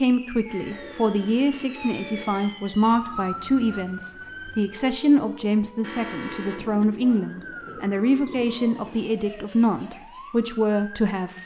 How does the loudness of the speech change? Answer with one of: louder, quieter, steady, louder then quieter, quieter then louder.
steady.